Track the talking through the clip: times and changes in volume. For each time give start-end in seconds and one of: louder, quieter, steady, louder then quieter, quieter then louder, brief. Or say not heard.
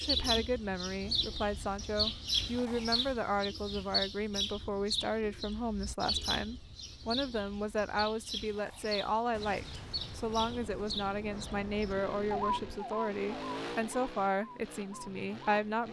0.0-15.8 steady.